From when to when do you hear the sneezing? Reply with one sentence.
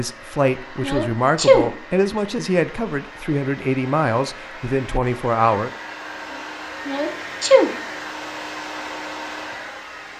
The sneezing can be heard from 0.8 to 1.6 s and from 6.8 to 7.7 s.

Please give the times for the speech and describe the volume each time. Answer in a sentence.
The speech can be heard from 0.0 to 5.7 s, at a steady volume.